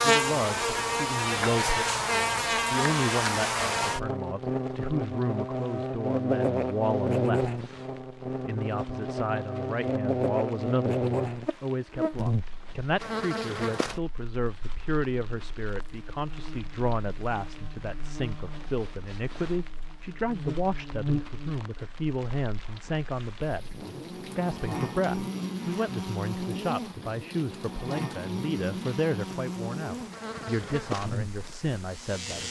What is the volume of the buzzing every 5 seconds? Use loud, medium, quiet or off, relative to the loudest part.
loud, loud, loud, quiet, medium, medium, medium.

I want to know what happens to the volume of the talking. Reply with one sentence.
The volume of the talking stays about the same.